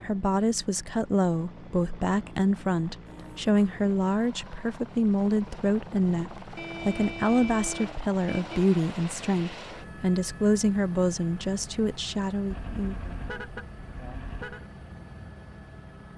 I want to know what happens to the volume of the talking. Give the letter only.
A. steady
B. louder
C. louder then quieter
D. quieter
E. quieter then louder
A.